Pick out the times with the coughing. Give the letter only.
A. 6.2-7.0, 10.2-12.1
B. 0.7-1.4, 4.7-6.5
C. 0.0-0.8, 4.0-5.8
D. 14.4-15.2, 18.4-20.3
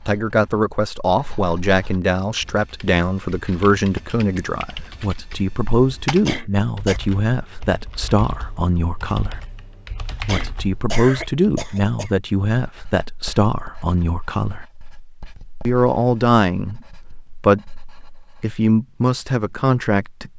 A.